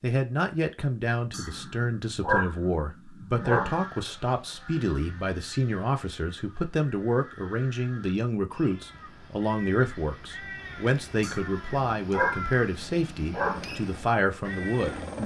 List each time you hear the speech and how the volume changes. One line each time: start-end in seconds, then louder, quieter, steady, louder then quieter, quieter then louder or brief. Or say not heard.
0.0-15.2 steady.